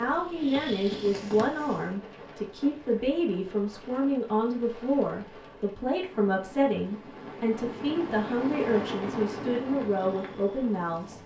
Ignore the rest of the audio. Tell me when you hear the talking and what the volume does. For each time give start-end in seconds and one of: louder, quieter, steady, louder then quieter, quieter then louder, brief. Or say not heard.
0.0-11.2 steady.